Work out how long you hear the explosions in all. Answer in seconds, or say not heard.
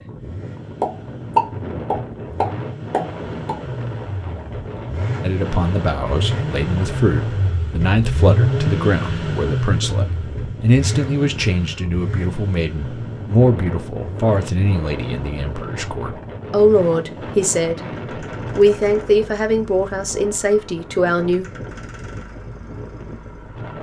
3 s.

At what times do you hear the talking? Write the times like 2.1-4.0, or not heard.
5.2-17.8, 18.6-21.4.